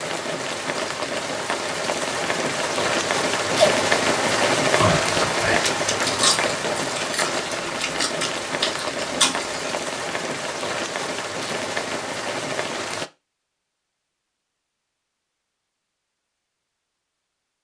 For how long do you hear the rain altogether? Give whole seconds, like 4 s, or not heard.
13 s.